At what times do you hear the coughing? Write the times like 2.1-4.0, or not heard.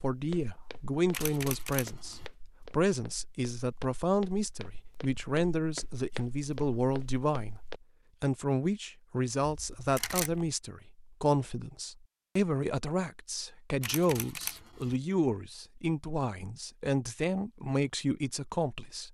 not heard.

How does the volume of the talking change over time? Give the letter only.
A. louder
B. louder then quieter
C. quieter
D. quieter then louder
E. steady
E.